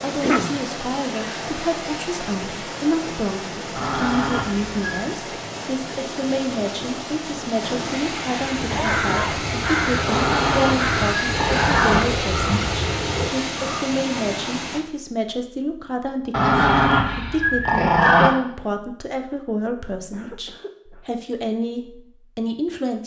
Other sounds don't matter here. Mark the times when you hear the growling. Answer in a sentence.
The growling can be heard from 3.8 to 5.2 s, from 10.1 to 12.0 s and from 16.3 to 18.3 s.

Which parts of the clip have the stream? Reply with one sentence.
The stream can be heard from 0.0 to 14.8 s.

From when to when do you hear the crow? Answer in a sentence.
The crow can be heard from 8.3 to 13.9 s.